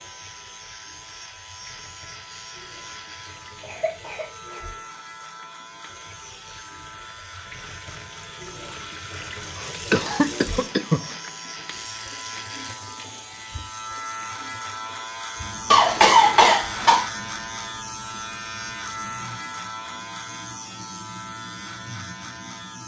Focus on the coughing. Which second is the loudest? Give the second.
16 s.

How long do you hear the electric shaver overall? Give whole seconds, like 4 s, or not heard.
23 s.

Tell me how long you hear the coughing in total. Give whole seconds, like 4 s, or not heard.
4 s.